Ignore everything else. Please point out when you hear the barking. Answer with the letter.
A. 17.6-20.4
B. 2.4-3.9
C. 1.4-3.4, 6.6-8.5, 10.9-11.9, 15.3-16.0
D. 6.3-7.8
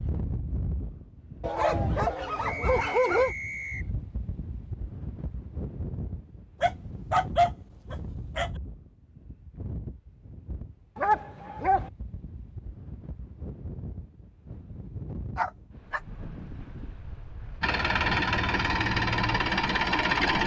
C.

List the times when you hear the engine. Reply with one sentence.
You can hear the engine from 17.6 to 20.4 s.